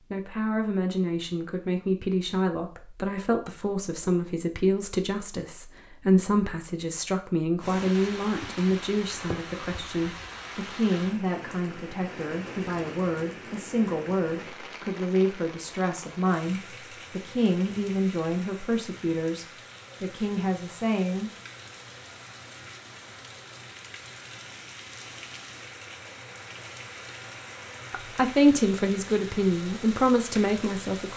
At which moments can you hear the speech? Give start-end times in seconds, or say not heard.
0.0-21.3, 27.9-31.1.